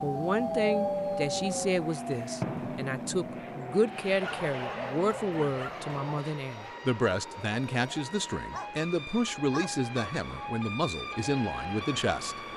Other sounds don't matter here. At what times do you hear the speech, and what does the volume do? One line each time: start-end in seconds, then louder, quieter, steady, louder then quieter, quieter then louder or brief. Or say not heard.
0.0-12.3 steady.